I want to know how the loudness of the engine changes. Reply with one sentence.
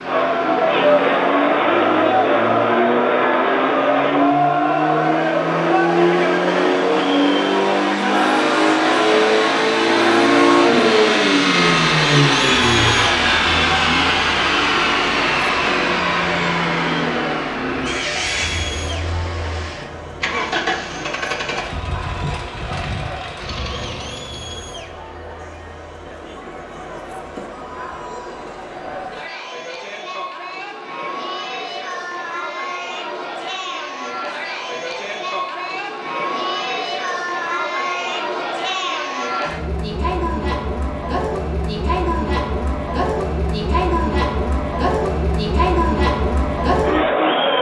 The volume of the engine goes up, then down.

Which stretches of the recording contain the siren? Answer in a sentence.
You can't hear the siren here.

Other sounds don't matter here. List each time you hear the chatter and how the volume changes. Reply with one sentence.
The chatter can be heard from 0.0 to 47.5 s, getting quieter then louder.